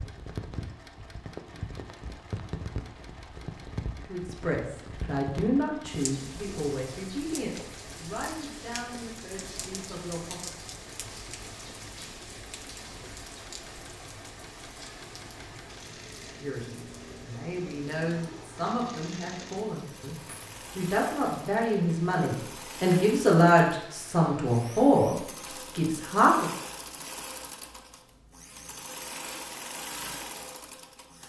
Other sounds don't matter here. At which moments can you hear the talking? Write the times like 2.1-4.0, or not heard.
4.0-10.5, 16.4-20.1, 20.8-25.1, 25.8-26.5.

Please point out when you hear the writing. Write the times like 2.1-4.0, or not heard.
not heard.